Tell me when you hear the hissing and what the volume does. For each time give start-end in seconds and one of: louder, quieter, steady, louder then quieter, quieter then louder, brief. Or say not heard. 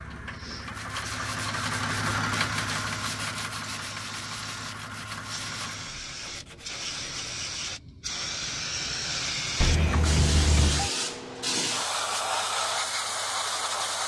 0.0-14.0 louder.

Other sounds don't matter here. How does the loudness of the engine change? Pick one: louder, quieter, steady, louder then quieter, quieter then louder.
louder then quieter.